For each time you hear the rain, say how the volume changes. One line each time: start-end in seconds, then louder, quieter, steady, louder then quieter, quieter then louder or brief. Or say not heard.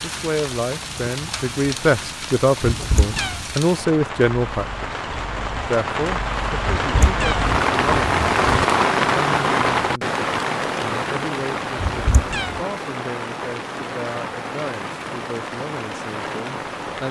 0.0-17.0 louder then quieter.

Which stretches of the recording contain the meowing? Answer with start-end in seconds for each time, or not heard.
2.6-3.4, 6.7-8.7, 11.8-12.6.